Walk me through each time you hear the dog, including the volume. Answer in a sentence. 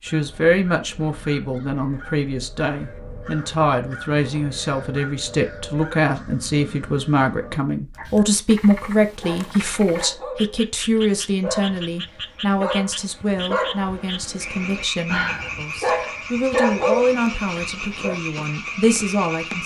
The dog can be heard from 9.2 to 18.1 s, getting louder.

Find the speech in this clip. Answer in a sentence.
You can hear the speech from 0.0 to 19.6 s.